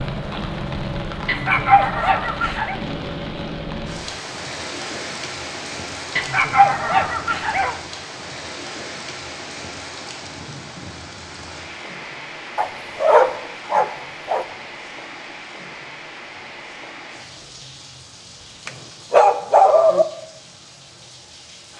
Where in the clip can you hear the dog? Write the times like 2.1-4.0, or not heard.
1.2-2.8, 6.2-7.8, 12.6-14.4, 18.6-20.1.